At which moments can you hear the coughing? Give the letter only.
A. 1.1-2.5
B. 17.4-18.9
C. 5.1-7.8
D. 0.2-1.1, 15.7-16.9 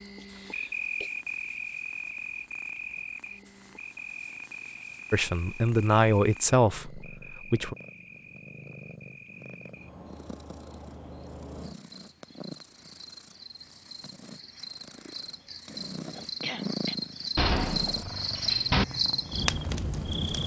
D.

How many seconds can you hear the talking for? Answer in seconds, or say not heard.
3 s.